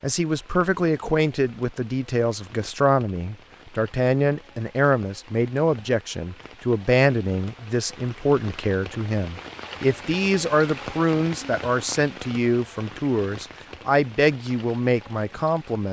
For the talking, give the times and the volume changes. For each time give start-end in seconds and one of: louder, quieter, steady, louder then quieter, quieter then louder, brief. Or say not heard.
0.0-15.8 steady.